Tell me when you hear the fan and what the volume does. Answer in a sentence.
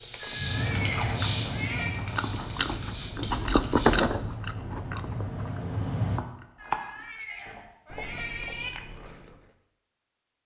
You can hear the fan from 0.0 to 6.2 s, getting quieter then louder.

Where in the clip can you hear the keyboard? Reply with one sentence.
The keyboard can be heard from 0.0 to 4.0 s.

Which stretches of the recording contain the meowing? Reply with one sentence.
You can hear the meowing from 0.2 to 2.0 s and from 6.5 to 8.7 s.